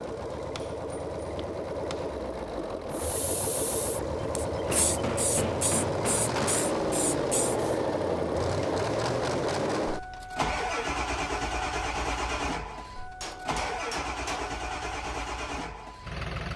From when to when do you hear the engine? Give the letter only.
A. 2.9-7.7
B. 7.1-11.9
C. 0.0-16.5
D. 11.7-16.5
C.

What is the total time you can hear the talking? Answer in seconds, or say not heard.
not heard.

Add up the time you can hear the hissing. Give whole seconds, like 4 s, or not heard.
5 s.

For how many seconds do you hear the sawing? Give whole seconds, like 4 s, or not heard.
not heard.